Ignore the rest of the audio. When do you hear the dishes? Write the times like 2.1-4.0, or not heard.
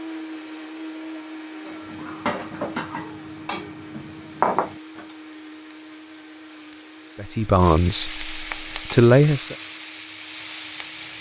1.6-5.0.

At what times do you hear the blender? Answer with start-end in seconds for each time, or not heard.
0.0-11.1.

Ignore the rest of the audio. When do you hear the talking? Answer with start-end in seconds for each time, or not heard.
7.2-9.6.